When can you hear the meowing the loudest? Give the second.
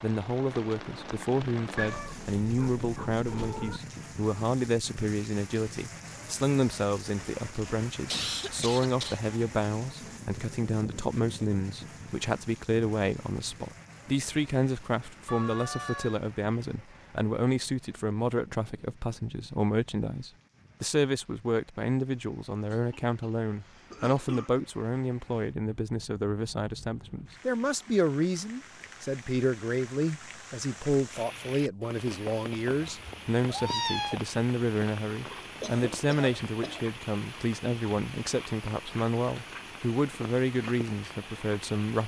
34 s.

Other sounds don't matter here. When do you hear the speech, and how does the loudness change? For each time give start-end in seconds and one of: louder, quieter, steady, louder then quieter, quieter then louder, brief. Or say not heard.
0.0-42.0 steady.